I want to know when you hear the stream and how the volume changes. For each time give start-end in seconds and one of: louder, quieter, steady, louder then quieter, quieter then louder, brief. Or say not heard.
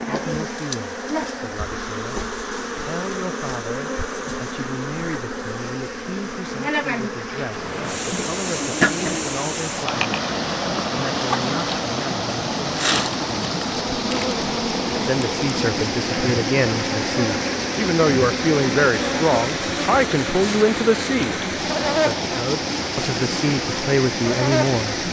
7.5-25.0 steady.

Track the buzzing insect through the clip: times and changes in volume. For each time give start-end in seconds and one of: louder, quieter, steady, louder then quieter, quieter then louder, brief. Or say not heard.
0.0-24.9 steady.